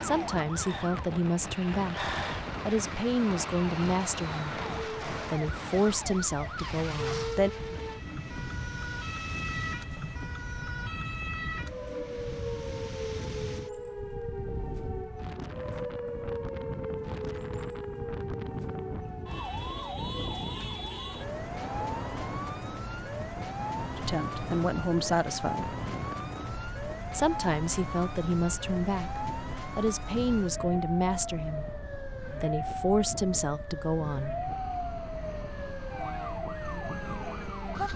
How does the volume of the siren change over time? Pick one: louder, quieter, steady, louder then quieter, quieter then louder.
steady.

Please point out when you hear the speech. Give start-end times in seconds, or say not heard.
0.0-7.5, 23.9-25.8, 27.1-34.4.